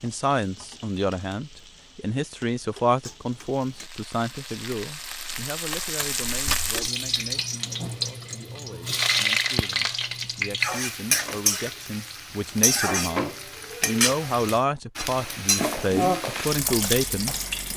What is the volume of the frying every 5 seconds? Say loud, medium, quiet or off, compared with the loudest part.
quiet, loud, loud, loud.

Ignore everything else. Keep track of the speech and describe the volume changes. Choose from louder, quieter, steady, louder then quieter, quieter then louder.
quieter then louder.